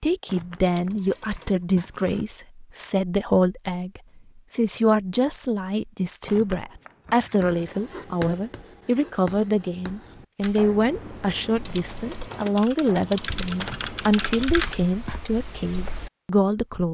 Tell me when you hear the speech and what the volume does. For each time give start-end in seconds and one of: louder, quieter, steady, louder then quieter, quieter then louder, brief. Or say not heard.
0.0-16.8 steady.